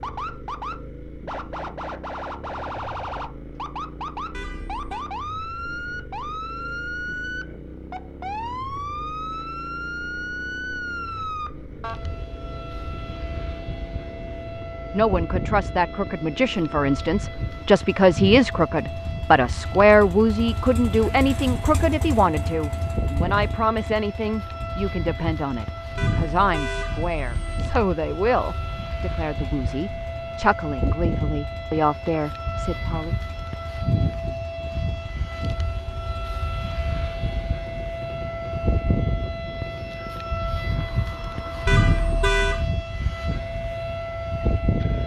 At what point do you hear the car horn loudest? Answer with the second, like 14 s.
42 s.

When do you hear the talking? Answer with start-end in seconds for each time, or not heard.
14.9-33.1.